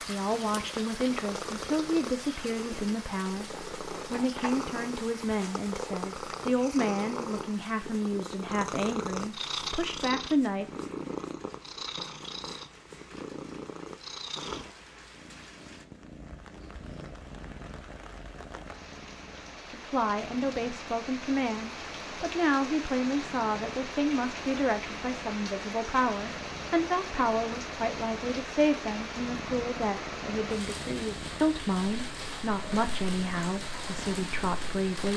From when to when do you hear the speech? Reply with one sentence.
You can hear the speech from 0.1 to 10.7 s and from 19.7 to 35.1 s.